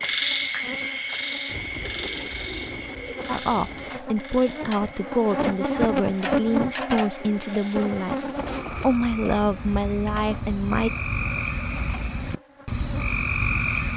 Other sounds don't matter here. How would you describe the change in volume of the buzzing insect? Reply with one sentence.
The volume of the buzzing insect goes up, then down.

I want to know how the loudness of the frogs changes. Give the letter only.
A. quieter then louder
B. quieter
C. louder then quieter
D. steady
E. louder
A.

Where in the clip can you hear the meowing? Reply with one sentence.
The meowing can't be heard in this clip.